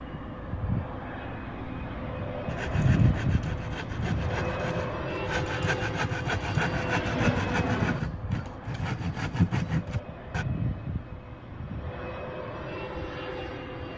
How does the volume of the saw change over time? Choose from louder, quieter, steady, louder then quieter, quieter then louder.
louder.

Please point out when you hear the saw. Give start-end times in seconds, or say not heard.
2.5-10.4.